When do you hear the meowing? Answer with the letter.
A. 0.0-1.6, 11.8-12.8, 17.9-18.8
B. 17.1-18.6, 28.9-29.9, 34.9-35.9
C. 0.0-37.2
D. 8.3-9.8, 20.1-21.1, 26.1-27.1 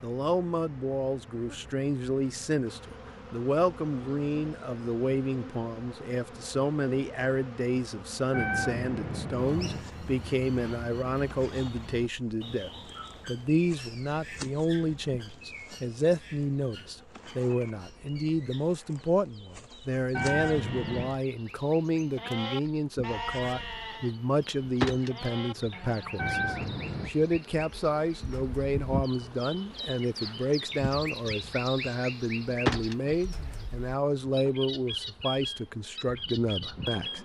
D.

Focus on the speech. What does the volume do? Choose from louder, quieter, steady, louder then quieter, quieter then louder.
steady.